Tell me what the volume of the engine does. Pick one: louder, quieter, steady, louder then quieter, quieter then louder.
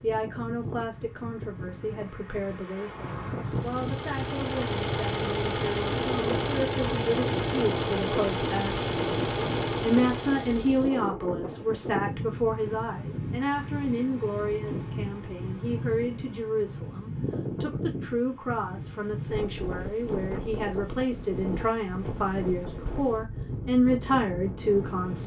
steady.